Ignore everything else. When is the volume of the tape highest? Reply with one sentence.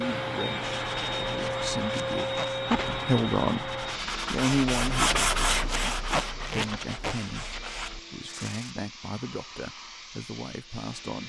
The loudest moment of the tape is at 6 seconds.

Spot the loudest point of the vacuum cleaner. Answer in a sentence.
The volume of the vacuum cleaner peaks at 2 seconds.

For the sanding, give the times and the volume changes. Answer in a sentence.
The sanding can be heard from 0.7 to 8.8 s, getting louder then quieter.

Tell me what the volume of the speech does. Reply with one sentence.
The loudness of the speech goes up, then down.